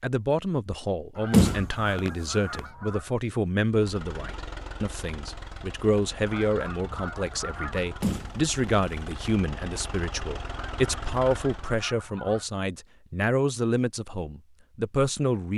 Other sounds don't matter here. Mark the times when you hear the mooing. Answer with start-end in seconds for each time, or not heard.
not heard.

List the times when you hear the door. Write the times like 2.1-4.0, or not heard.
1.3-2.6, 8.0-9.3.